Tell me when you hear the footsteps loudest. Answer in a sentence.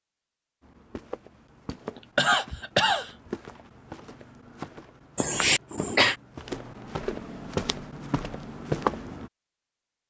The volume of the footsteps peaks at 9 seconds.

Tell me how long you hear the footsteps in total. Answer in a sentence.
You can hear the footsteps for 9 seconds altogether.